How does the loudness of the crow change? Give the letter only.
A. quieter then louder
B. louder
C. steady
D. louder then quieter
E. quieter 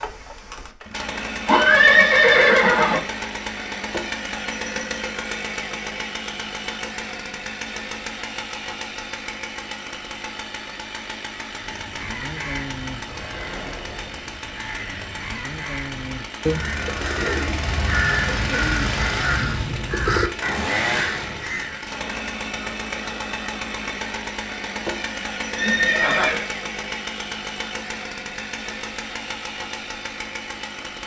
B.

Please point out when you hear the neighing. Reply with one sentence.
The neighing can be heard from 1.4 to 3.0 s and from 25.6 to 26.4 s.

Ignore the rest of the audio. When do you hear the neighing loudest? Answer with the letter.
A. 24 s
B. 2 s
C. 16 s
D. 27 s
B.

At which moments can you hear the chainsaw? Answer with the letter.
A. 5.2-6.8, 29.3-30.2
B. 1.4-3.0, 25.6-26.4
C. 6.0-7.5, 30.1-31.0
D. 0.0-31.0
D.